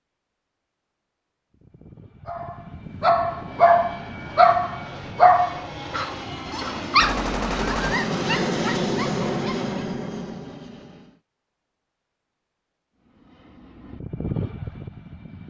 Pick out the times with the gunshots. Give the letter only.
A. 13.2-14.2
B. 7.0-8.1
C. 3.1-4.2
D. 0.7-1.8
B.